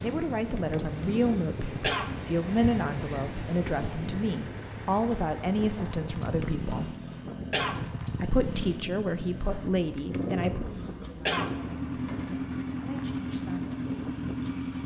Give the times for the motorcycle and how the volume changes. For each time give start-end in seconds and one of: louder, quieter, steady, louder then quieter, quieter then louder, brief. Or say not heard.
0.0-14.8 louder.